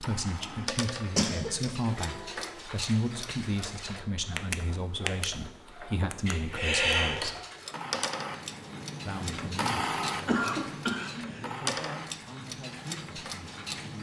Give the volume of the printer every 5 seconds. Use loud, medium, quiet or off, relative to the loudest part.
medium, loud, loud.